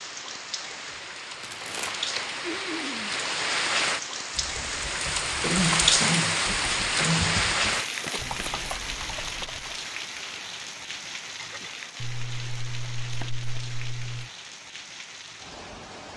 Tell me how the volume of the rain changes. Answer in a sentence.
The loudness of the rain goes up, then down.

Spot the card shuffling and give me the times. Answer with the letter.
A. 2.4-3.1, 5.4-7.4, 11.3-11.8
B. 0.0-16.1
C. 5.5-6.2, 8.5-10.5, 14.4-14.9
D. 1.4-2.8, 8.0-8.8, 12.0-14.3
D.